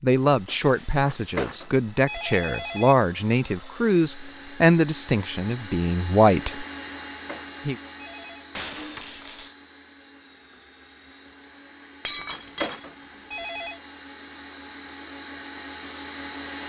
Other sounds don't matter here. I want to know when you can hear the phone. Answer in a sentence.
The phone can be heard from 0.9 to 3.0 s, from 7.1 to 8.4 s and from 12.2 to 13.8 s.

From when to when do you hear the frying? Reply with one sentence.
You can't hear the frying here.